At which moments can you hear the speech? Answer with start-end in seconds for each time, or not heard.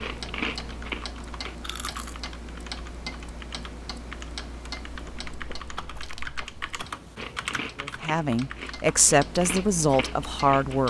7.8-10.8.